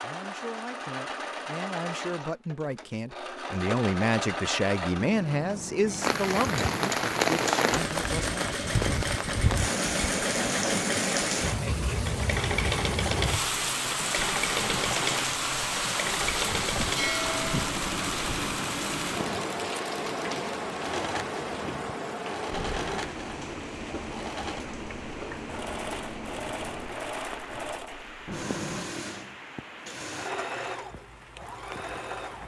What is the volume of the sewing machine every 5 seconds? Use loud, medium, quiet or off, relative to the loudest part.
loud, loud, loud, loud, medium, medium, medium.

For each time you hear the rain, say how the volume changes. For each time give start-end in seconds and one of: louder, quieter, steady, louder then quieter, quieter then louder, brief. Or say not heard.
6.0-32.4 quieter.